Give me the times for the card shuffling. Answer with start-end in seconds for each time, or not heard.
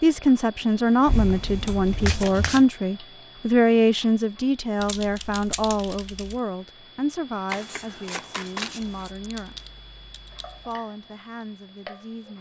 2.0-2.6, 7.5-9.2.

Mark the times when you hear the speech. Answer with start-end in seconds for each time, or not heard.
0.0-9.6, 10.7-12.3.